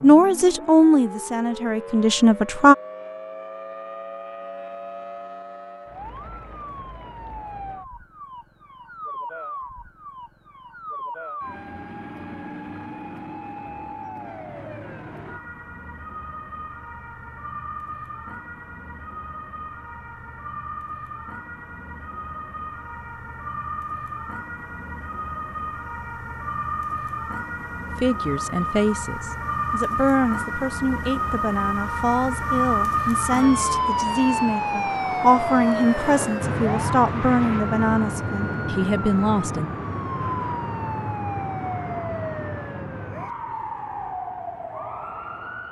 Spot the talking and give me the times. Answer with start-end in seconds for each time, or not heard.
0.0-2.8, 27.9-39.6.